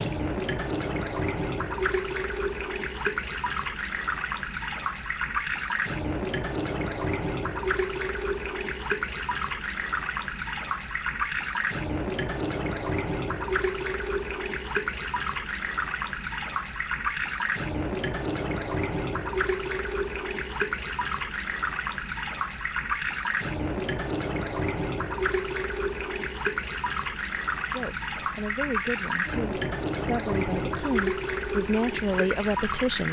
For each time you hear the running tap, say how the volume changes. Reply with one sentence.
You can hear the running tap from 0.0 to 33.0 s, at a steady volume.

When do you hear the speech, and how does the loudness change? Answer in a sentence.
The speech can be heard from 27.6 to 33.0 s, getting louder.